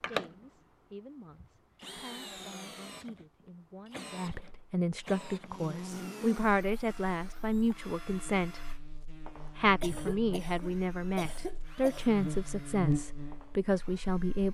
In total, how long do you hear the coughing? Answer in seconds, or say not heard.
2 s.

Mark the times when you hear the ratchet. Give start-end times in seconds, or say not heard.
not heard.